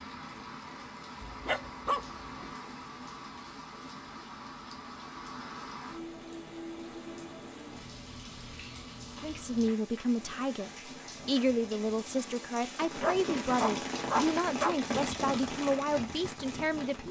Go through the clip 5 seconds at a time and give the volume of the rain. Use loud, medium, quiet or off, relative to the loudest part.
medium, medium, loud, loud.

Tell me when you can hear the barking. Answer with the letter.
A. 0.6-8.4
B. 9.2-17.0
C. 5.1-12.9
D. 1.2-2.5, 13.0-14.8
D.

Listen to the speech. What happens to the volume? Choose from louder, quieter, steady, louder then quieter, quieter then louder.
steady.